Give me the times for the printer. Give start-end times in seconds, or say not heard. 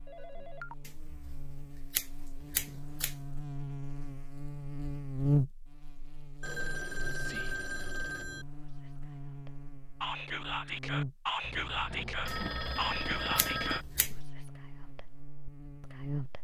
not heard.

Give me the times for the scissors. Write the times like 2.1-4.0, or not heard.
0.8-3.1, 12.2-14.2.